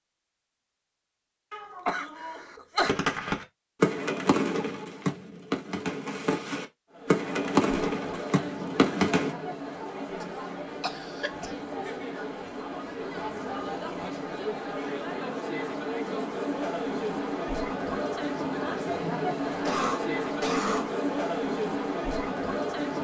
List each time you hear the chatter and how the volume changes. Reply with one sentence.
You can hear the chatter from 6.9 to 22.9 s, getting louder.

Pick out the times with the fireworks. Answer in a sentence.
The fireworks can be heard from 2.9 to 9.3 s.